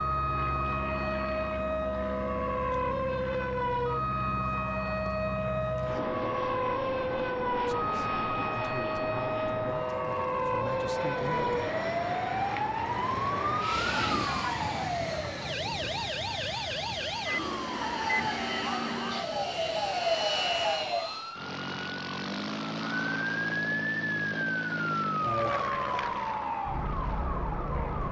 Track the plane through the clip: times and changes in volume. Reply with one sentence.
You can hear the plane from 0.0 to 28.0 s, at a steady volume.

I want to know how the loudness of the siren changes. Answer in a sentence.
The volume of the siren stays about the same.